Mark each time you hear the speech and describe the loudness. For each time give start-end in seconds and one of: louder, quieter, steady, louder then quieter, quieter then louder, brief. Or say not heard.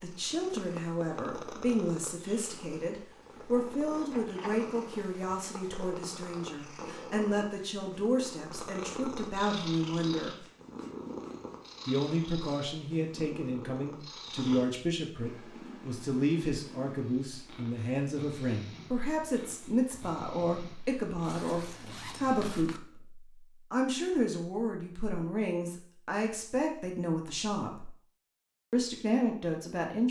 0.0-10.4 steady
11.8-27.9 steady
28.7-30.0 brief.